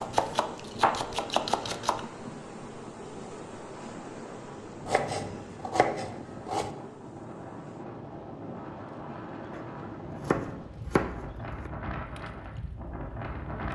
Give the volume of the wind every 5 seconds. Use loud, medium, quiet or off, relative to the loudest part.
medium, loud, loud.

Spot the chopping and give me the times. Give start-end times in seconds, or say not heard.
0.0-2.0, 4.8-6.7, 9.5-11.7.